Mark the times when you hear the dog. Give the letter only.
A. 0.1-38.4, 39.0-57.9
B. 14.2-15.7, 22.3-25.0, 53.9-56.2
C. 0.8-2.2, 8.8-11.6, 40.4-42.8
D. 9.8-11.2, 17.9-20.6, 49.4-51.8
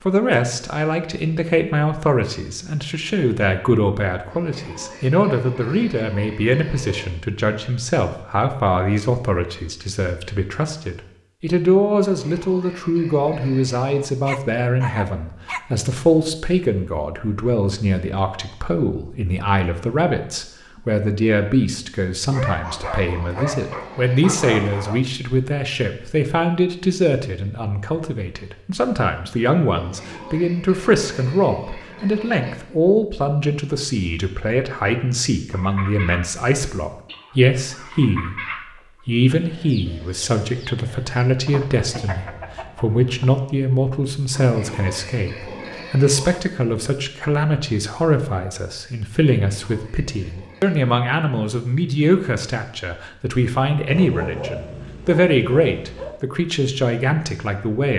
B.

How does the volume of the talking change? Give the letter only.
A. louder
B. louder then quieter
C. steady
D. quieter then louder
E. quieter
C.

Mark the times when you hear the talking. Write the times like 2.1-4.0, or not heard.
0.1-38.4, 39.0-57.9.